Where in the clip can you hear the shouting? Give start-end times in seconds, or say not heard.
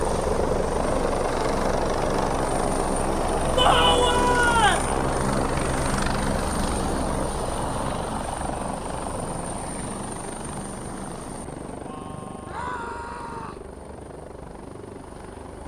3.5-4.9, 12.4-13.7.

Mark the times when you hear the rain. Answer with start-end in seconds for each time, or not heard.
not heard.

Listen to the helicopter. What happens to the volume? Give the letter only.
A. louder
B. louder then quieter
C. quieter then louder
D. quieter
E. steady
D.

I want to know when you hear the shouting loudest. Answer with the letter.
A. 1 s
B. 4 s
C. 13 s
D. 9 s
B.